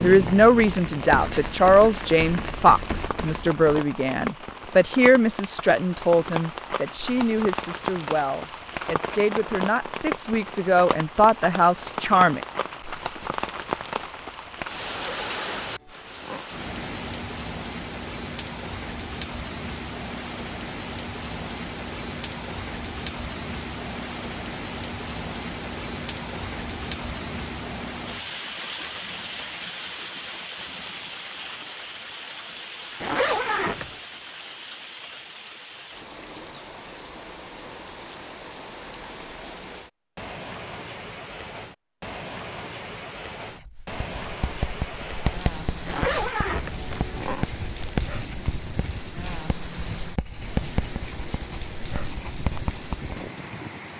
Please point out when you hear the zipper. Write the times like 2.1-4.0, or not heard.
14.8-16.4, 33.0-34.0, 45.9-47.5.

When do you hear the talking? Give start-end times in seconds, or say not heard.
0.0-12.4.